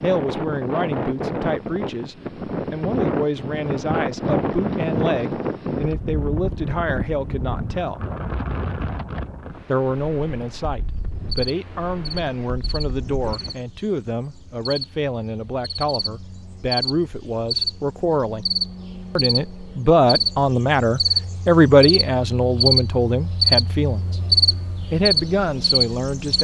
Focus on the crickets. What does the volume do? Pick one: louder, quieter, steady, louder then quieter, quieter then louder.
louder.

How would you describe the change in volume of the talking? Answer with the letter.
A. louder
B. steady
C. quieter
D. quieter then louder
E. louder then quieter
A.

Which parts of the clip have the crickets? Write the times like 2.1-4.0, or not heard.
10.8-26.3.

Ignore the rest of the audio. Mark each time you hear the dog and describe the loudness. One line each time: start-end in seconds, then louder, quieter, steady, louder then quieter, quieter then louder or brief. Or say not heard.
not heard.